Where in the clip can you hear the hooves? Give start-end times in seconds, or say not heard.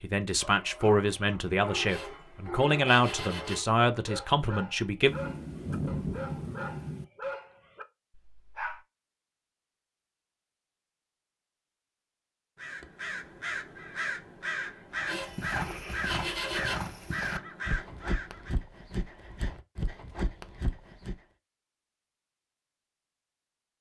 14.9-21.2.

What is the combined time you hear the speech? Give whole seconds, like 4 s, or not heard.
5 s.